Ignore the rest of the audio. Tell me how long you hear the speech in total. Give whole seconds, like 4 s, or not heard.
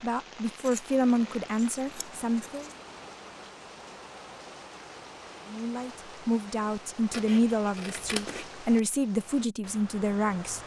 8 s.